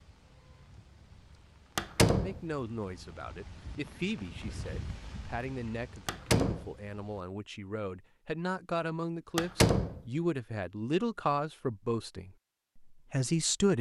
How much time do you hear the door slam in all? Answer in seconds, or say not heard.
2 s.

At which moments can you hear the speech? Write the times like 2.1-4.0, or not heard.
2.2-13.7.